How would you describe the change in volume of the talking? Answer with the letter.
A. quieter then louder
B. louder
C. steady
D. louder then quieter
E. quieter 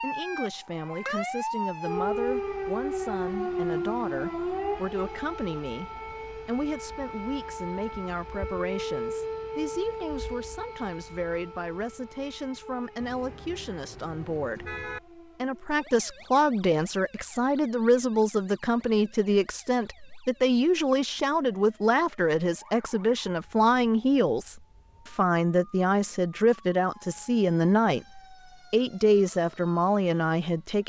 B.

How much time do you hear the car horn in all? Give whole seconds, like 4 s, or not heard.
2 s.